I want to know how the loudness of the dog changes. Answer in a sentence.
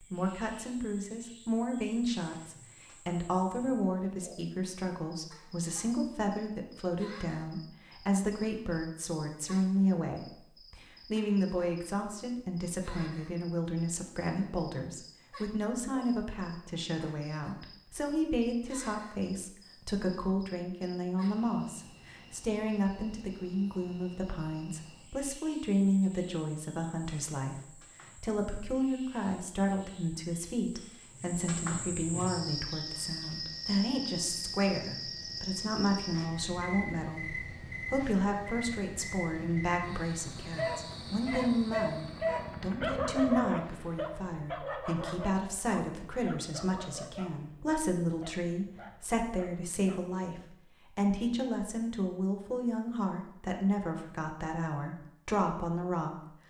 The volume of the dog goes down.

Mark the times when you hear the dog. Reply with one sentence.
The dog can be heard from 40.5 to 50.2 s.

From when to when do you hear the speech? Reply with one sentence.
You can hear the speech from 0.0 to 56.4 s.